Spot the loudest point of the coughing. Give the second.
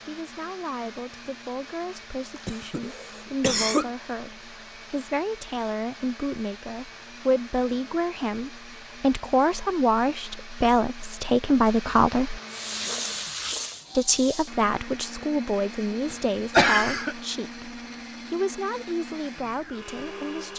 17 s.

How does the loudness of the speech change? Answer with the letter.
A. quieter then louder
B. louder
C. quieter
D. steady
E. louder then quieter
E.